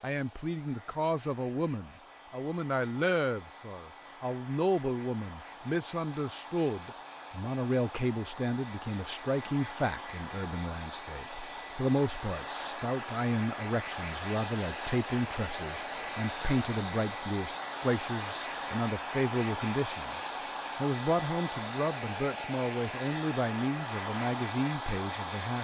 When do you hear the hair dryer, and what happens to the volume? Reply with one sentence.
The hair dryer can be heard from 0.0 to 25.5 s, getting louder.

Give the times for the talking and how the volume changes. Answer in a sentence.
The talking can be heard from 0.0 to 25.5 s, at a steady volume.